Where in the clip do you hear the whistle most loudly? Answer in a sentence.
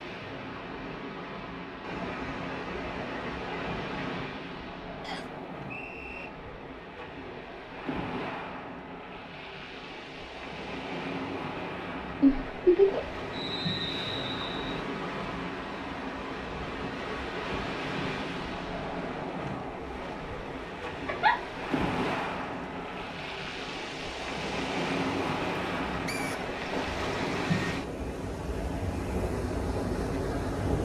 The loudest moment of the whistle is at 14 seconds.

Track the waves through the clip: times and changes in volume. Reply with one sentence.
You can hear the waves from 0.0 to 30.8 s, getting louder.